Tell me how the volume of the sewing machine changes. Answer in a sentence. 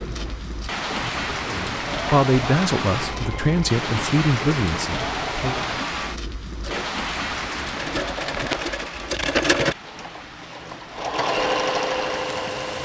The loudness of the sewing machine goes up.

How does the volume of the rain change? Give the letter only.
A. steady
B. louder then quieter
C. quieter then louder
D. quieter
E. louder
D.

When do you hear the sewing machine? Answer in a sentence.
You can hear the sewing machine from 0.0 to 12.8 s.